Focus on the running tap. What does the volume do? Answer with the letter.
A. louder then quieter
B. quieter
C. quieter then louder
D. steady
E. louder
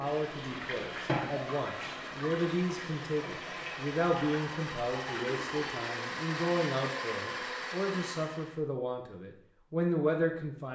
B.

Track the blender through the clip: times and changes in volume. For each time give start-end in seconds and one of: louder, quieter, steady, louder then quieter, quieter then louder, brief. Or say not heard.
0.0-8.6 louder.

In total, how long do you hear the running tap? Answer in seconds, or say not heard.
6 s.